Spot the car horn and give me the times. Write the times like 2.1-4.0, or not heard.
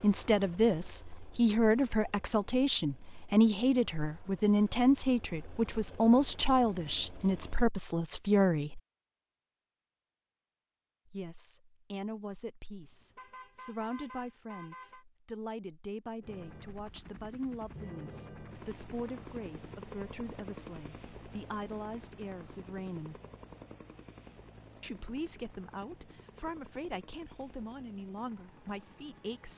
12.8-15.1.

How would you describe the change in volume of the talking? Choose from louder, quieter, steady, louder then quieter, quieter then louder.
quieter.